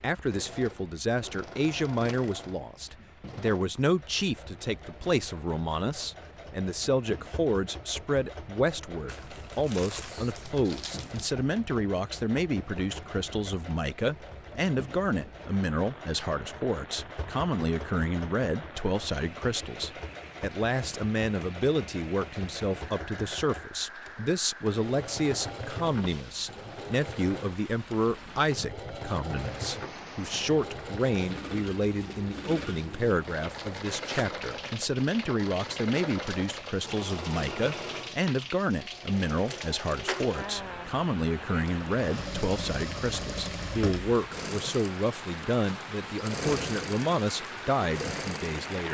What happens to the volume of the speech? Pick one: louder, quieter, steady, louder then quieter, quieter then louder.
steady.